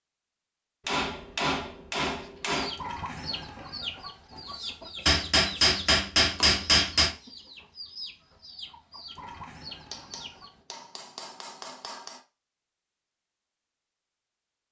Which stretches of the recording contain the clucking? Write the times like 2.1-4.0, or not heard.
2.5-10.6.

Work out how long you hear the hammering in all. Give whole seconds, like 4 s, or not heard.
6 s.